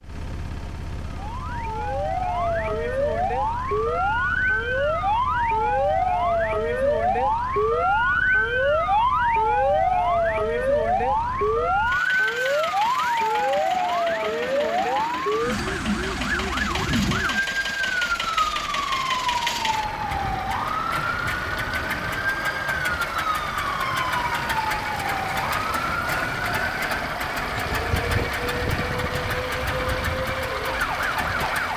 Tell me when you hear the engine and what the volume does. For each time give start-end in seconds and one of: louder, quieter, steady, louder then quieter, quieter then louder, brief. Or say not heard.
0.0-31.7 louder.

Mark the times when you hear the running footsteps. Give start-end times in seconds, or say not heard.
not heard.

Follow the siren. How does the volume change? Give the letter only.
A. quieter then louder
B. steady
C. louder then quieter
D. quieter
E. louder
D.